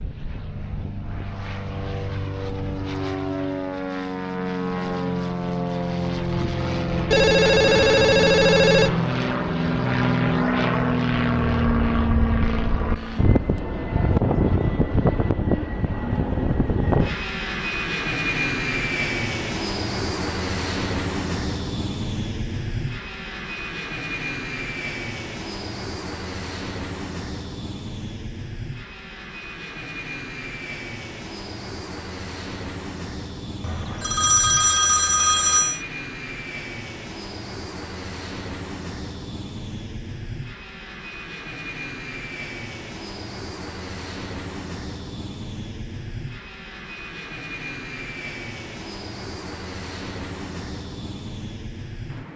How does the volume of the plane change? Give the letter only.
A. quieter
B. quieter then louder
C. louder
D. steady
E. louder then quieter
A.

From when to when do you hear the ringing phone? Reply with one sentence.
You can hear the ringing phone from 7.1 to 9.0 s and from 33.6 to 35.8 s.